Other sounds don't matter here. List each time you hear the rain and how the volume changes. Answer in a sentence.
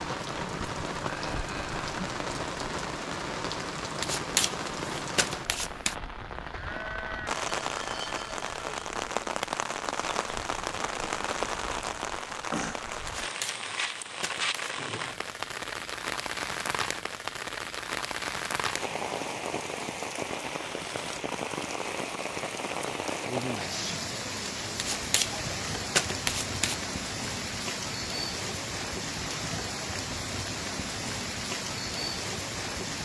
You can hear the rain from 0.0 to 33.0 s, at a steady volume.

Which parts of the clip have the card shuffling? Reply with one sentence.
You can hear the card shuffling from 4.0 to 6.0 s, from 13.1 to 14.8 s and from 24.8 to 26.9 s.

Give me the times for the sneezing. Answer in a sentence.
You can hear the sneezing from 23.6 to 24.1 s.